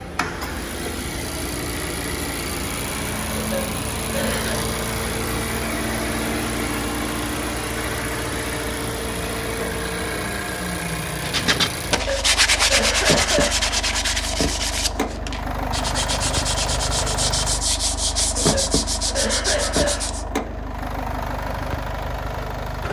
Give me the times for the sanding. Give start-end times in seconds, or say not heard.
11.2-20.2.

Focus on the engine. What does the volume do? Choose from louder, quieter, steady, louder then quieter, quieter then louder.
steady.